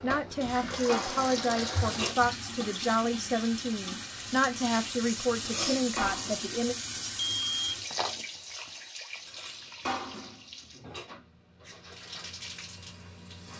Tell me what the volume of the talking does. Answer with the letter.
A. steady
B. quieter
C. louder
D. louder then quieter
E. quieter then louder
A.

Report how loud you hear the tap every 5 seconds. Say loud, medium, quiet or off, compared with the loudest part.
loud, loud, medium.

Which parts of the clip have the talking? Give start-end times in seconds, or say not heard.
0.0-6.8.